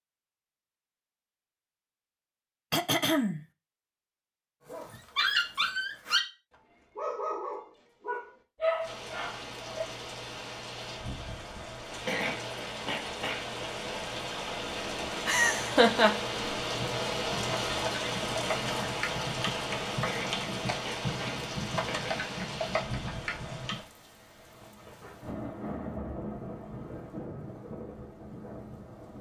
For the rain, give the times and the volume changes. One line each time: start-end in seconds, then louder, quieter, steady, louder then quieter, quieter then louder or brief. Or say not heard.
8.8-29.1 louder then quieter.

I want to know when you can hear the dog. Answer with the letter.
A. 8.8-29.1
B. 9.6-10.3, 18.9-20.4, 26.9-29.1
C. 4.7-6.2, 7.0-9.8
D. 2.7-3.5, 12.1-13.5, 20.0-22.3
C.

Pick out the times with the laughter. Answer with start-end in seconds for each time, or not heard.
15.2-16.1.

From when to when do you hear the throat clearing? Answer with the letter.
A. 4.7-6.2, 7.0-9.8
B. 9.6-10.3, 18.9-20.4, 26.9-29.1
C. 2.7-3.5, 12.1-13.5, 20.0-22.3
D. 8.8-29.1
C.